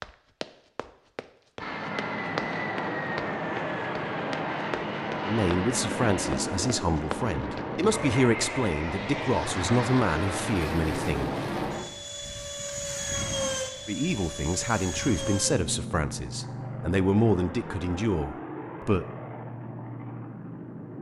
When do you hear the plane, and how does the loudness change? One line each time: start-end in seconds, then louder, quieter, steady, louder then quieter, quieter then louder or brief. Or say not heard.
1.6-20.9 quieter.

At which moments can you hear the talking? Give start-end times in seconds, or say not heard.
5.2-11.3, 13.8-19.1.